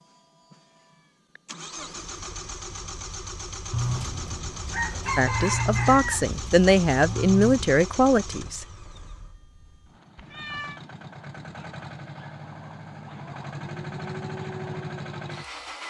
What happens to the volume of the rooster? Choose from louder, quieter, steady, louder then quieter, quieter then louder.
louder then quieter.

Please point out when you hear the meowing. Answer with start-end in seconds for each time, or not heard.
0.8-1.4, 10.2-10.8.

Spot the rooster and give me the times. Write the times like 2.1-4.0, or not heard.
3.7-7.8.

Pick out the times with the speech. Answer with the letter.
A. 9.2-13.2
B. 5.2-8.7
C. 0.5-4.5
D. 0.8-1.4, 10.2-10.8
B.